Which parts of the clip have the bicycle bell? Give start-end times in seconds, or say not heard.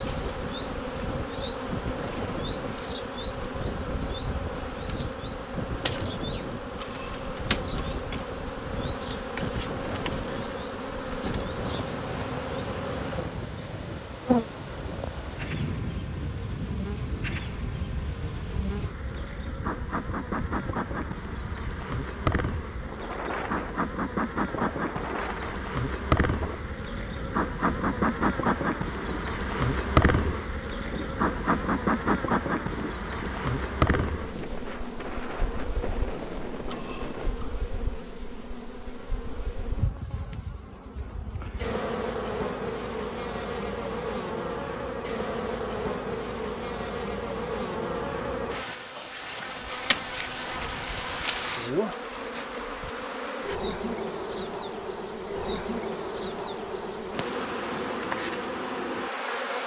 6.8-8.0, 36.6-37.6, 51.9-53.0.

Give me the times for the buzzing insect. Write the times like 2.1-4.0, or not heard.
0.0-59.6.